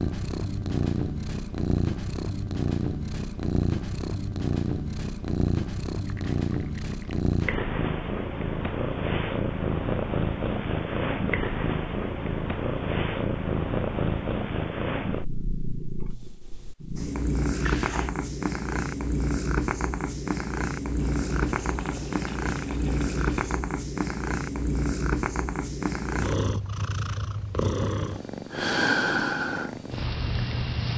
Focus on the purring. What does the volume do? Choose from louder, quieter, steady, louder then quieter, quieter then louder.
steady.